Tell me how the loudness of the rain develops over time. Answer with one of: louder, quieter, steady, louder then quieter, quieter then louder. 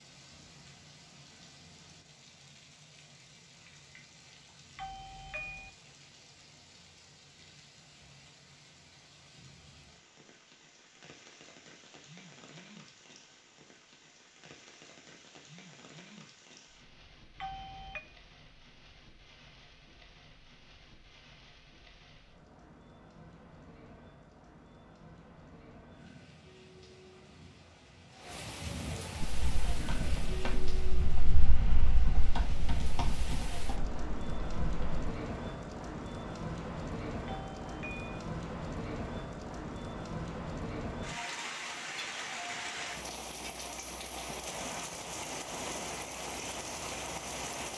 louder.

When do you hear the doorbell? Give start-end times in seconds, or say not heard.
4.8-5.7, 17.4-18.0, 37.2-38.1.